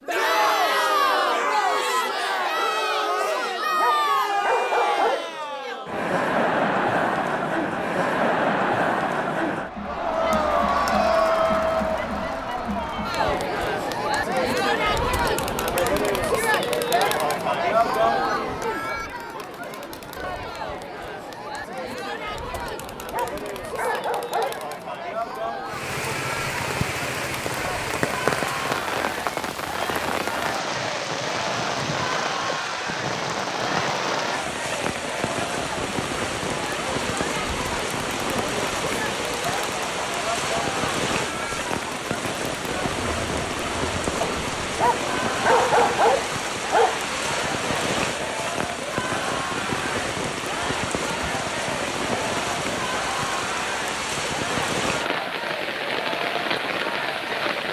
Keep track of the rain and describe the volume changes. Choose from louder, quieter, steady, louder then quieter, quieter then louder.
steady.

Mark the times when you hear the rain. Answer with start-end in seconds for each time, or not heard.
25.6-57.6.